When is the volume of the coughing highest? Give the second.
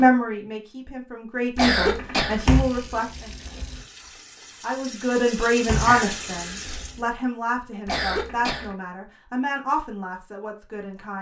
2 s.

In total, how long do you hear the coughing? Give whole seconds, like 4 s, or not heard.
2 s.